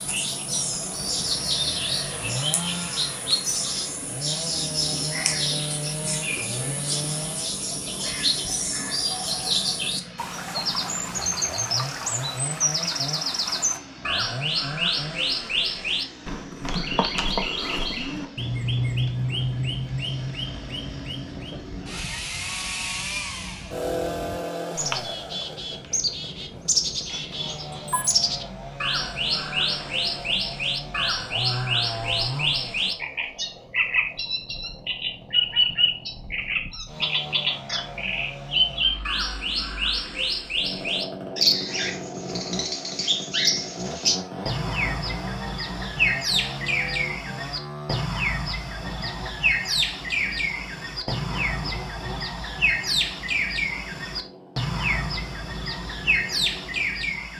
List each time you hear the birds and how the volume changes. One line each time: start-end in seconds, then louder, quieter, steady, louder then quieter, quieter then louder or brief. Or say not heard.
0.0-57.3 steady.